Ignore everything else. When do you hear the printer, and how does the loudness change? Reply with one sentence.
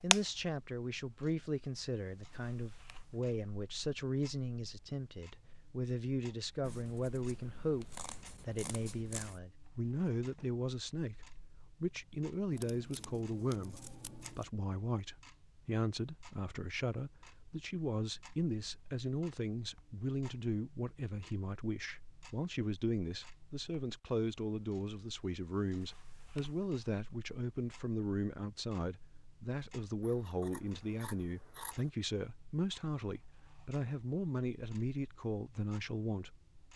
You can't hear the printer here.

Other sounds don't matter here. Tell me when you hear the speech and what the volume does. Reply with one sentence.
You can hear the speech from 0.0 to 36.4 s, at a steady volume.